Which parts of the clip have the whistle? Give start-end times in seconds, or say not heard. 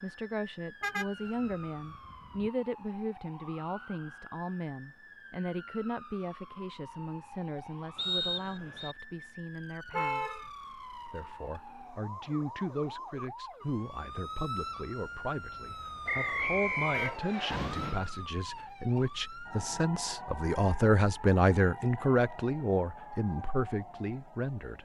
8.0-8.9, 16.1-17.6.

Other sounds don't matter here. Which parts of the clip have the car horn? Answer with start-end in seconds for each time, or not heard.
0.8-2.5, 9.9-10.4, 16.9-17.3.